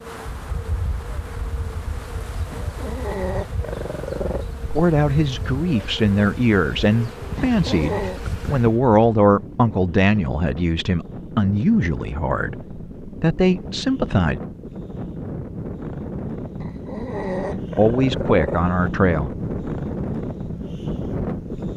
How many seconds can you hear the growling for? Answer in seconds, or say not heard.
5 s.